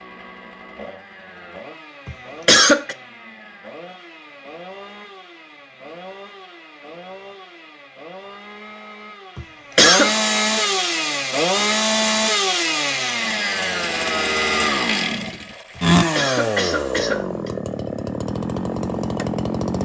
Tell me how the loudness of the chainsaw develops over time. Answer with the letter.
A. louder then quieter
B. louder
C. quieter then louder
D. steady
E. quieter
B.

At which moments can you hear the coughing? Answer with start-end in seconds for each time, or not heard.
2.0-3.0, 9.3-10.1, 15.8-17.5.